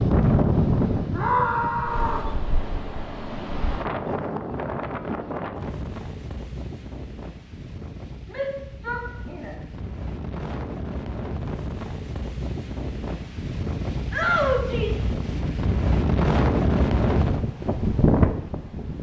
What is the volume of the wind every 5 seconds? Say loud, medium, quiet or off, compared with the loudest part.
loud, quiet, medium, loud.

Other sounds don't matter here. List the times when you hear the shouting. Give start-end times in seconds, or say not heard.
1.1-2.3, 8.3-9.6, 14.1-15.1.